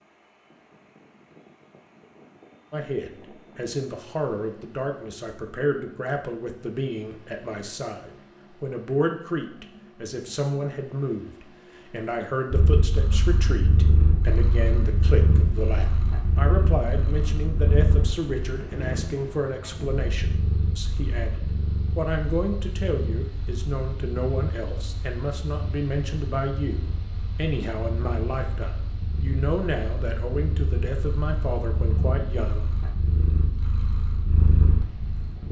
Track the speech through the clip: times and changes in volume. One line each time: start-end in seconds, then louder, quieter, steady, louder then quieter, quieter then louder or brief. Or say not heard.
2.7-32.7 steady.